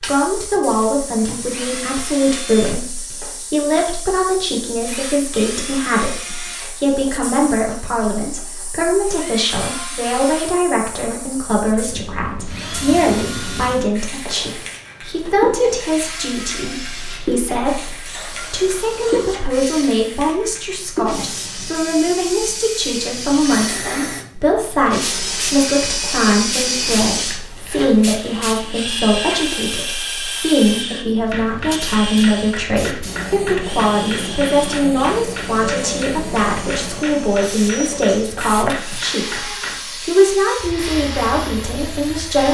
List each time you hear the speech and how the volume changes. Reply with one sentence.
You can hear the speech from 0.0 to 42.4 s, at a steady volume.